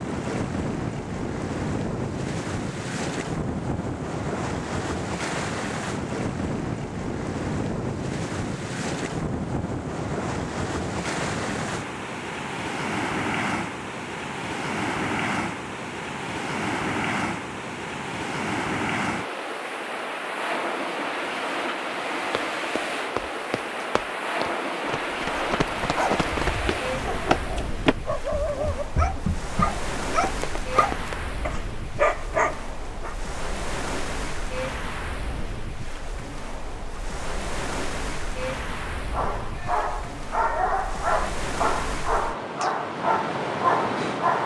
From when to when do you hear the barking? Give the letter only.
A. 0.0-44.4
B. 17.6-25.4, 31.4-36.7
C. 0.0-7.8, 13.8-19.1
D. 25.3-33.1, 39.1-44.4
D.